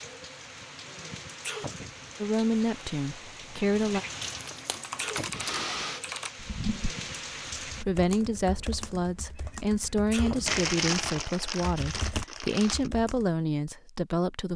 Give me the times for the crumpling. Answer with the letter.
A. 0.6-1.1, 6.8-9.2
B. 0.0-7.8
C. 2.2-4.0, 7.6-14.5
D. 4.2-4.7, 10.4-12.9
D.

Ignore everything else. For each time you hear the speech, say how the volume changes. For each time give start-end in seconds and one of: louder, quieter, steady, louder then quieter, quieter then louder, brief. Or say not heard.
2.2-4.0 brief
7.6-14.5 steady.